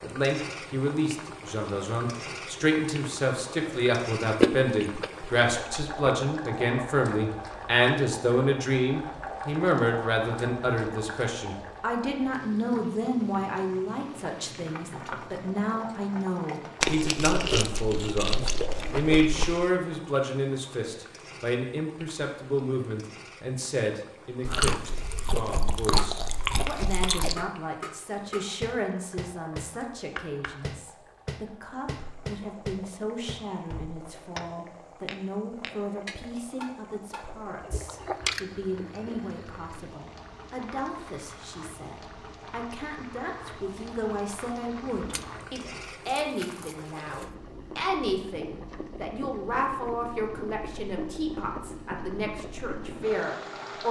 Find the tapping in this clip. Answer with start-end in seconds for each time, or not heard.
25.9-37.3.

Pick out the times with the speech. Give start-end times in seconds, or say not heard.
0.0-53.8.